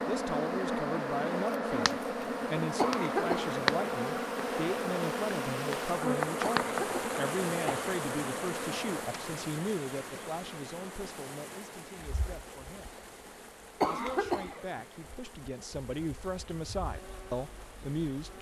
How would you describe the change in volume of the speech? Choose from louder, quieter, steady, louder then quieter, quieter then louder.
quieter then louder.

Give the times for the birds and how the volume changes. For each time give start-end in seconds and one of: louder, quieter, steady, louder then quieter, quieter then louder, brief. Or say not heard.
not heard.